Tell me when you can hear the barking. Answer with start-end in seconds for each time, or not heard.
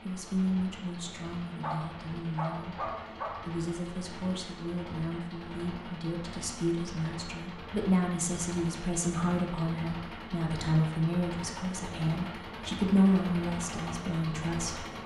1.6-3.6.